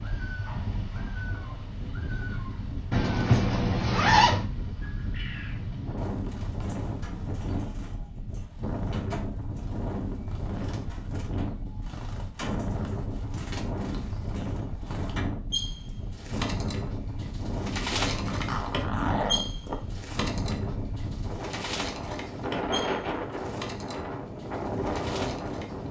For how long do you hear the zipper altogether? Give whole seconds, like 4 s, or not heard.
3 s.